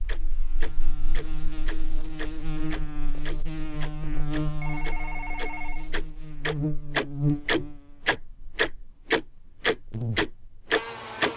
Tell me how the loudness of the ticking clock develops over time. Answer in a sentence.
The volume of the ticking clock goes up.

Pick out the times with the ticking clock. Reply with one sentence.
The ticking clock can be heard from 0.1 to 11.3 s.